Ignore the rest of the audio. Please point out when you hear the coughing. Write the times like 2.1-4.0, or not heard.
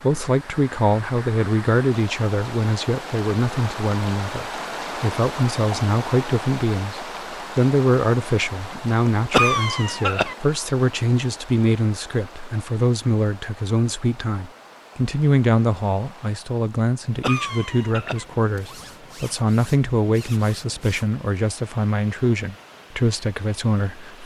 9.3-10.3, 17.2-18.2.